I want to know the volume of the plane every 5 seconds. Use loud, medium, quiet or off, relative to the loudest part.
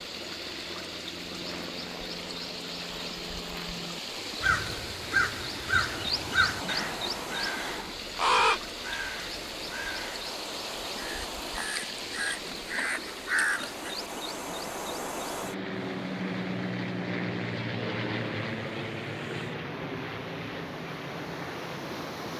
medium, medium, medium, loud, medium.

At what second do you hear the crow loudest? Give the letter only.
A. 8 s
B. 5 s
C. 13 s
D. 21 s
A.